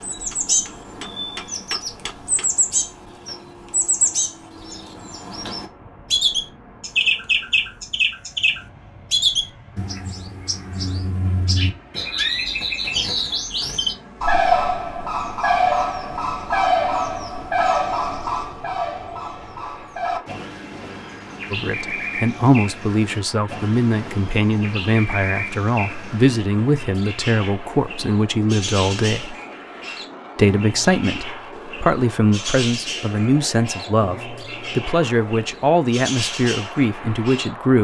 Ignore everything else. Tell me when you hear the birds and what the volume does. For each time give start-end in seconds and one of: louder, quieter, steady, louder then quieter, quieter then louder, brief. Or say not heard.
0.0-37.5 quieter.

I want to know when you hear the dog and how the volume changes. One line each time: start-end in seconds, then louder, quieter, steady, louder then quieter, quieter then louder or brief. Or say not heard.
not heard.